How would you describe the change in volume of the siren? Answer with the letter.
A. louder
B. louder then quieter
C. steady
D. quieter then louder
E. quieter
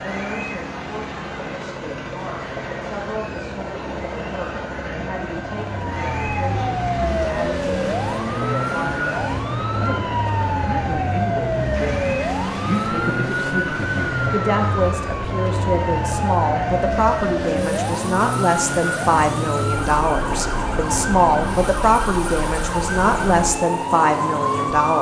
C.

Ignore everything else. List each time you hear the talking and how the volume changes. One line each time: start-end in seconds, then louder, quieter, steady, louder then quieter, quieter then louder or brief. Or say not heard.
0.0-24.9 louder.